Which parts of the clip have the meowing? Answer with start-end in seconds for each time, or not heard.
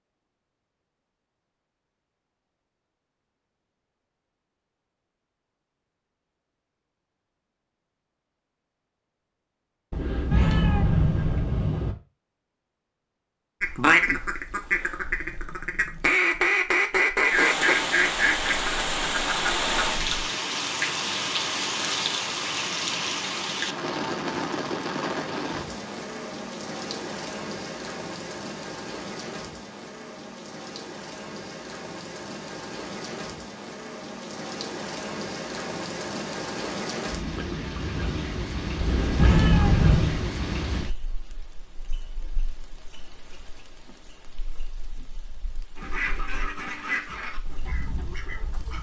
9.9-11.9, 38.8-40.2.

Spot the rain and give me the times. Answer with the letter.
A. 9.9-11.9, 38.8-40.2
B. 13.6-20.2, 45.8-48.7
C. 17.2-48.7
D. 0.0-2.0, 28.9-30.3
C.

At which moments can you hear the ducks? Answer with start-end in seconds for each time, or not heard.
13.6-20.2, 45.8-48.7.